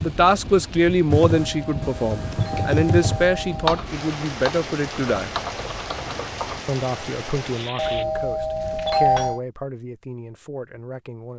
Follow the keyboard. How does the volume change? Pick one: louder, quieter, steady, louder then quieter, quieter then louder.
louder then quieter.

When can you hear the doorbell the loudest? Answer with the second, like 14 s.
9 s.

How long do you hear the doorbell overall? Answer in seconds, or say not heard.
4 s.